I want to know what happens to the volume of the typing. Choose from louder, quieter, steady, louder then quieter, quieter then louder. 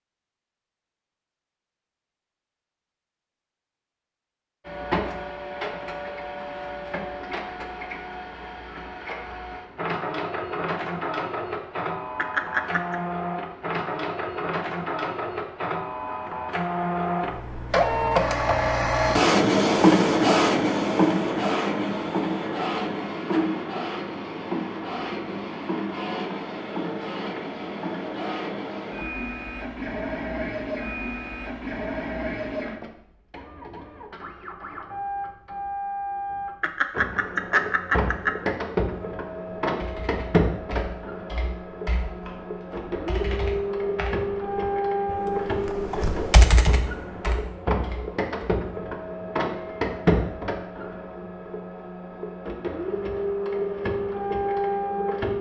louder.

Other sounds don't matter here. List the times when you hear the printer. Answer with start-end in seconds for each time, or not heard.
4.7-55.3.